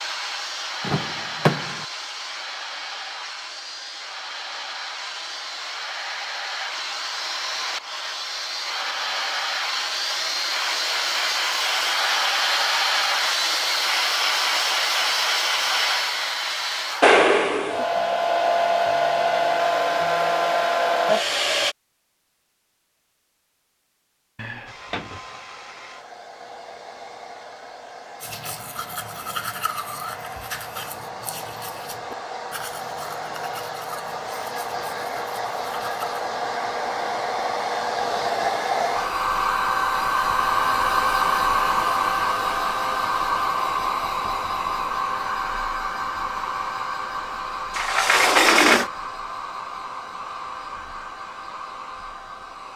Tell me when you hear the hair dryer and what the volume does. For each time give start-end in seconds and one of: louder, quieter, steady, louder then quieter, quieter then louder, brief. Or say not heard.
0.0-21.8 louder
24.6-52.7 louder then quieter.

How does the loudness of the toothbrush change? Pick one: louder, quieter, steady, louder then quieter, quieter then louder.
quieter.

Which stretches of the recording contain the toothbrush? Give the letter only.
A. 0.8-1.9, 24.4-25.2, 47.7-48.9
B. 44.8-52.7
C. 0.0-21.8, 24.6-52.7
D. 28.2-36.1
D.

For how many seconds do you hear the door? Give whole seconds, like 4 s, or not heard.
3 s.